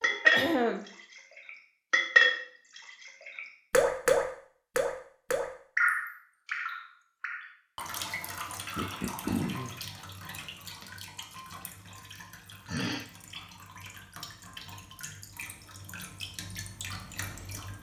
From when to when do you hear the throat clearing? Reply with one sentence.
The throat clearing can be heard from 0.0 to 0.9 s, from 8.8 to 9.8 s and from 12.7 to 13.1 s.